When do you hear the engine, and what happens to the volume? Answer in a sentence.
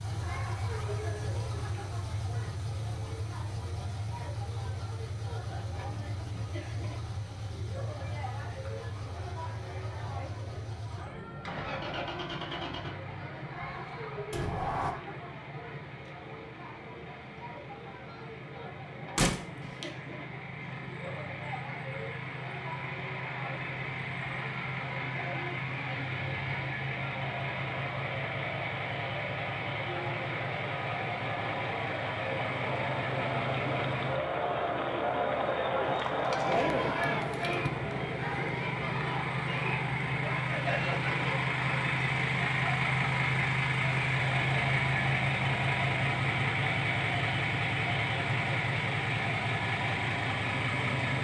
You can hear the engine from 0.0 to 51.1 s, getting louder.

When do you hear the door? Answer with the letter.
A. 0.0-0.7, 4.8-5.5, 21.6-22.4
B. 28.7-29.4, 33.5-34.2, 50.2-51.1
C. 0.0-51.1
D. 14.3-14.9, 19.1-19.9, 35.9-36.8
D.